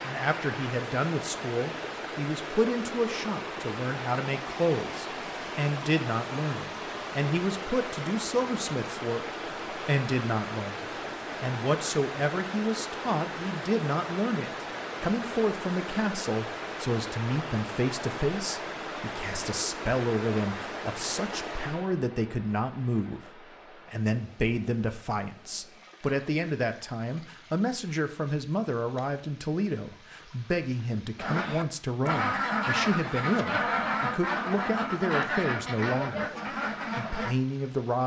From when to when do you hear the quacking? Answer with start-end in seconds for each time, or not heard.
31.1-37.4.